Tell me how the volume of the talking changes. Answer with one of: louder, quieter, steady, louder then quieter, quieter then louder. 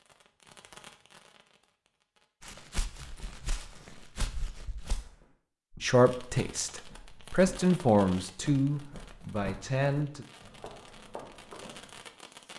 louder then quieter.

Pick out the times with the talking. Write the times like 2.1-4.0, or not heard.
5.8-10.2.